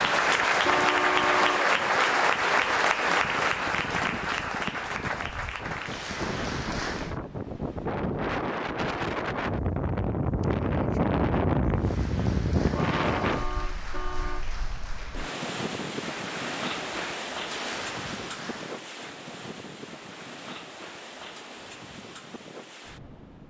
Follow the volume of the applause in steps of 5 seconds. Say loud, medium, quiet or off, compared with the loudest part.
loud, medium, quiet, quiet, off.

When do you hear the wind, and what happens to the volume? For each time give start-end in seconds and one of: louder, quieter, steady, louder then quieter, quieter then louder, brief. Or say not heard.
0.0-23.4 louder then quieter.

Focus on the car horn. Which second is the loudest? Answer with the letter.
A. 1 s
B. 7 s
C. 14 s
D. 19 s
A.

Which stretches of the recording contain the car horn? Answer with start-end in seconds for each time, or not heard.
0.7-1.7, 12.7-14.4.